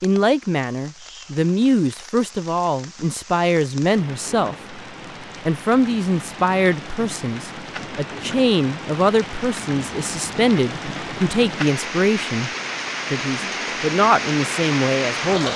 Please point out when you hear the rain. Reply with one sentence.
The rain can be heard from 0.0 to 15.5 s.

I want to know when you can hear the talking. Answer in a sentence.
The talking can be heard from 0.0 to 4.8 s, from 5.4 to 12.5 s and from 13.1 to 15.5 s.